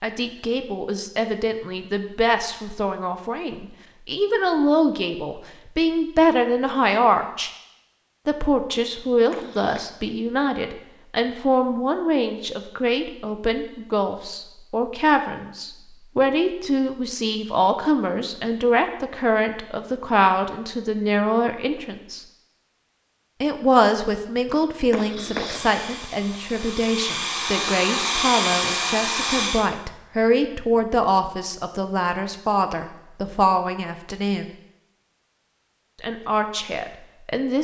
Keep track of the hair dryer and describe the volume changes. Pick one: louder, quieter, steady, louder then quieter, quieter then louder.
louder.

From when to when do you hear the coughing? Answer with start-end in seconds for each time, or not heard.
9.3-9.9, 24.9-25.6.